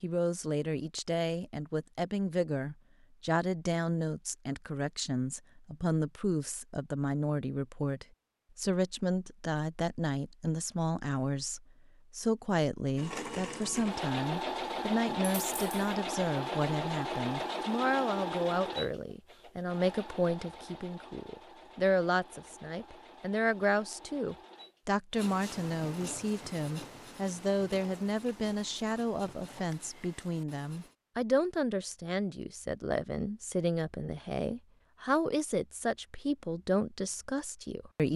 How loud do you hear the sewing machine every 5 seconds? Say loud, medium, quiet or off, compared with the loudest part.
off, off, loud, loud, quiet, quiet, off, off.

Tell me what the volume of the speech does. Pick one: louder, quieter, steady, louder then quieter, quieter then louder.
steady.